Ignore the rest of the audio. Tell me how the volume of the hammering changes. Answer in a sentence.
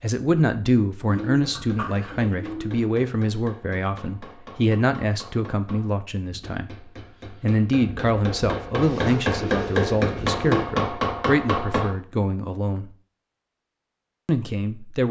The loudness of the hammering goes up.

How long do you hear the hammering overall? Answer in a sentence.
The hammering can be heard for 11 seconds in total.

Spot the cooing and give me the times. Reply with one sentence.
The cooing can be heard from 1.1 to 2.8 s and from 8.8 to 10.7 s.